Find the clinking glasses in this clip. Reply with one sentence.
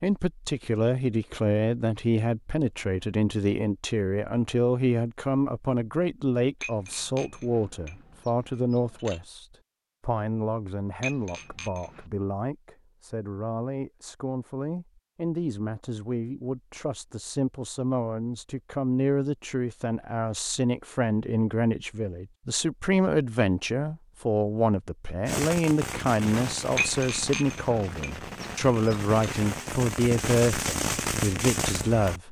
You can hear the clinking glasses from 6.6 to 9.2 s, from 11.0 to 12.1 s and from 26.8 to 29.3 s.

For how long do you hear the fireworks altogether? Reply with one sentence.
The fireworks can be heard for 7 seconds in total.